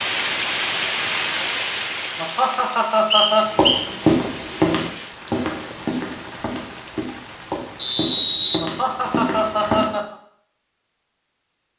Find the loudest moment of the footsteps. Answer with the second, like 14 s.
4 s.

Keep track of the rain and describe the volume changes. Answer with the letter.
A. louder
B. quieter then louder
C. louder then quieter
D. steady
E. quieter
E.